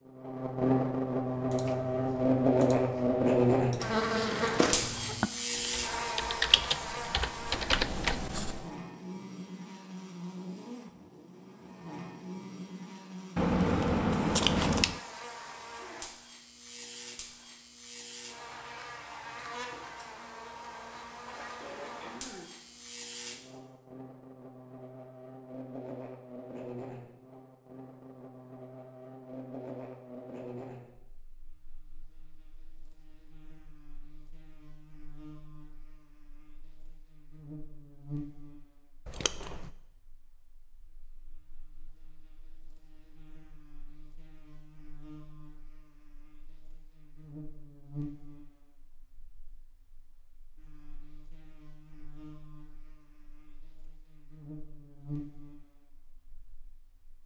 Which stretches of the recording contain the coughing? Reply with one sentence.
You can't hear the coughing here.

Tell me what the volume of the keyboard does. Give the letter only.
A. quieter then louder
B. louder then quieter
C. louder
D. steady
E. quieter
C.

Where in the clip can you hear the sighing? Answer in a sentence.
The sighing can be heard from 21.2 to 22.6 s.